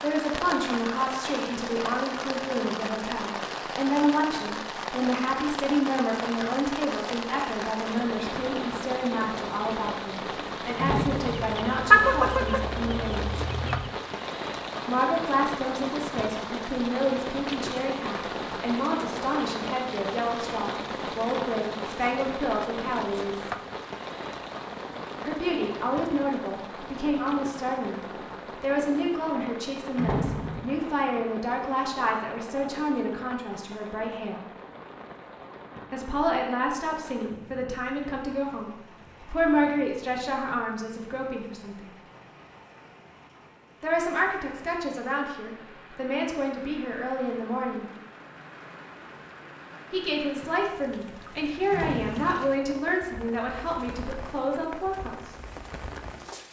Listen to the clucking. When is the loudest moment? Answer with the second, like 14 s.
12 s.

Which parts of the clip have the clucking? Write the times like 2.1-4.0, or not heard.
11.3-13.9.